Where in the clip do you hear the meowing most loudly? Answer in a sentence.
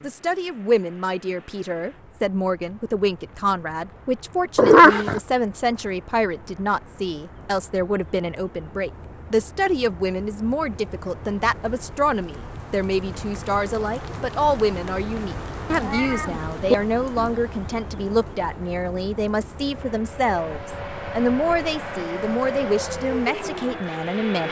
The loudest moment of the meowing is at 5 seconds.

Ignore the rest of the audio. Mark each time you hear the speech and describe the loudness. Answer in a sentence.
The speech can be heard from 0.0 to 24.4 s, at a steady volume.